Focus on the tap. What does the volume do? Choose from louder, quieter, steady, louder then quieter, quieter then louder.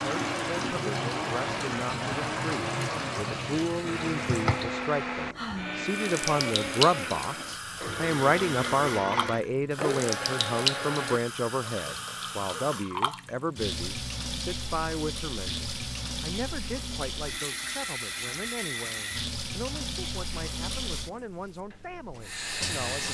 steady.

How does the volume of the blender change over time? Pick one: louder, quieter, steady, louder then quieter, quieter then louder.
steady.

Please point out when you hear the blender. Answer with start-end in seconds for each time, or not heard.
0.0-11.2.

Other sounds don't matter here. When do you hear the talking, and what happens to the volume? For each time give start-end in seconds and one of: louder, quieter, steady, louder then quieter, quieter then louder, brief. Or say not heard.
0.0-23.0 louder then quieter.